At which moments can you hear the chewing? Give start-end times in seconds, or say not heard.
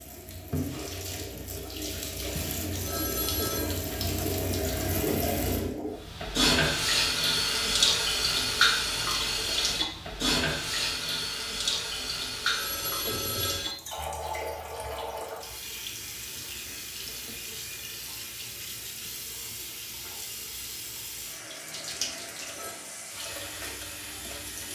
not heard.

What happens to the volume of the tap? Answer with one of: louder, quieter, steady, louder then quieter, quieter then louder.
louder then quieter.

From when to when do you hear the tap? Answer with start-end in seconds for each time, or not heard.
0.0-24.7.